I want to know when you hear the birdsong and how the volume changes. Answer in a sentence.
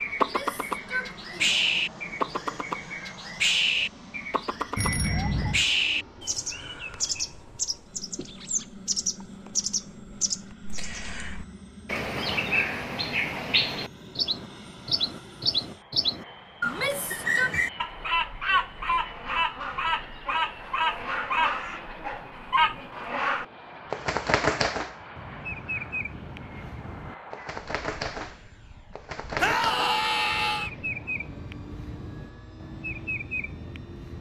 You can hear the birdsong from 0.0 to 34.1 s, getting quieter.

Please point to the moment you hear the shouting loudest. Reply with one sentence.
The loudest moment of the shouting is at 30 seconds.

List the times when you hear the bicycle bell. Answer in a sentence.
You can hear the bicycle bell from 4.8 to 5.7 s.